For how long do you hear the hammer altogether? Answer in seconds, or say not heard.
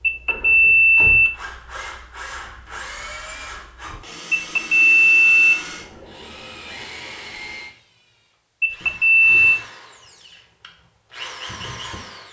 not heard.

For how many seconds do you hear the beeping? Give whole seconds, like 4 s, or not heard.
4 s.